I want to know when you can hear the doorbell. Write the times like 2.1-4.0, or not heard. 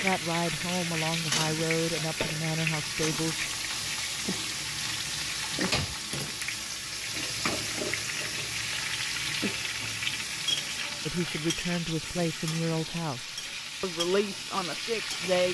not heard.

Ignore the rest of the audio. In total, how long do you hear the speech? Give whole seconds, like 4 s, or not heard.
8 s.